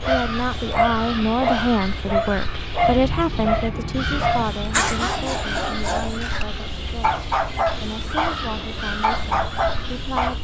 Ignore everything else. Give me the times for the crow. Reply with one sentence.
The crow can be heard from 0.0 to 10.4 s.